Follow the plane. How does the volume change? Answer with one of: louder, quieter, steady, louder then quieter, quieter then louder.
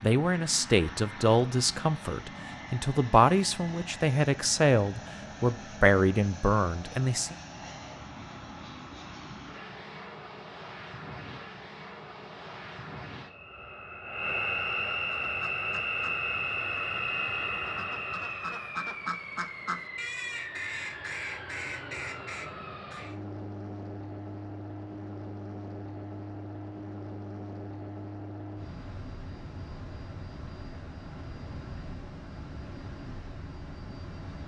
louder then quieter.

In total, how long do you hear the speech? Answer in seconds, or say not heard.
7 s.